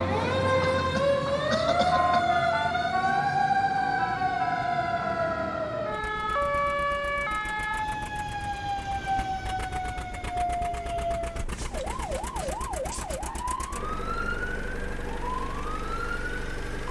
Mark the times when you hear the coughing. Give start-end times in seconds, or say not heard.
0.8-2.2.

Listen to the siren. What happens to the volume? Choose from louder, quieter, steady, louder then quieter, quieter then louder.
quieter.